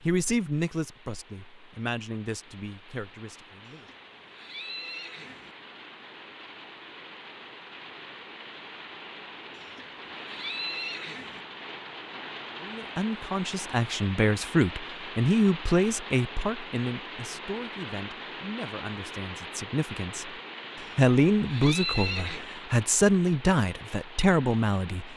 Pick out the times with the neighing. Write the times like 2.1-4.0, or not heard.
3.6-5.5, 9.6-11.4, 20.8-22.4.